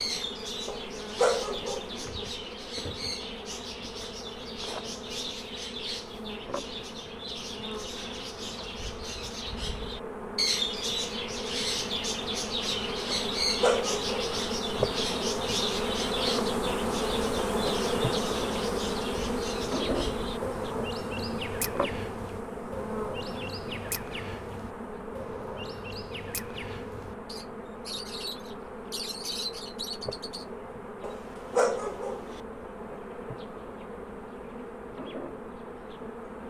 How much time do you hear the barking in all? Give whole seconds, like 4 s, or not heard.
4 s.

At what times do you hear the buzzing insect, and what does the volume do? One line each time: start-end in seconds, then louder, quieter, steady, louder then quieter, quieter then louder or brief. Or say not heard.
0.0-36.4 louder then quieter.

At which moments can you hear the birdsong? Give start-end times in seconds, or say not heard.
0.0-30.4.